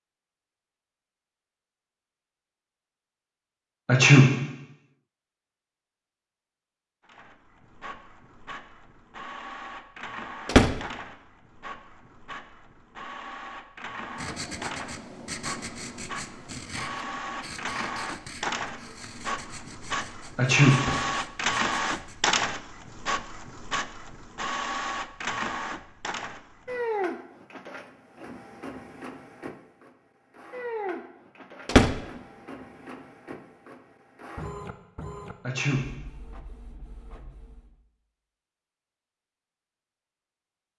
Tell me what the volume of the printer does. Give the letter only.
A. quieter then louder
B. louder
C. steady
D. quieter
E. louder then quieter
E.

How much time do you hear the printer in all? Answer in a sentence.
The printer can be heard for 31 seconds in total.